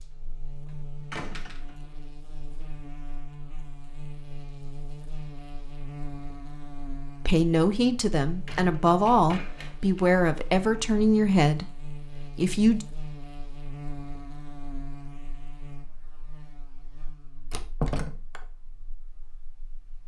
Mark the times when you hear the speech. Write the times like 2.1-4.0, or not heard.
7.2-12.8.